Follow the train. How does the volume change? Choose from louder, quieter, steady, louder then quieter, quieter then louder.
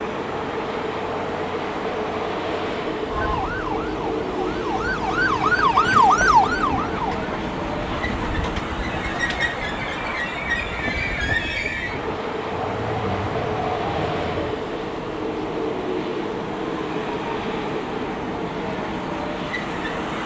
steady.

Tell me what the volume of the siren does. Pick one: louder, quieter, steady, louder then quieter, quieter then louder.
louder.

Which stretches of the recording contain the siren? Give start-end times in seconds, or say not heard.
3.0-7.2.